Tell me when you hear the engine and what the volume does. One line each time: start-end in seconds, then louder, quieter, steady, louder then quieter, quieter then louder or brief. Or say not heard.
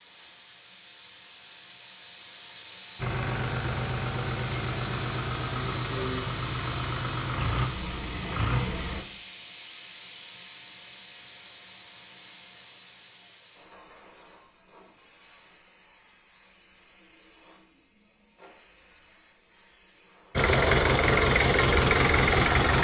3.0-9.1 steady
20.4-22.7 brief.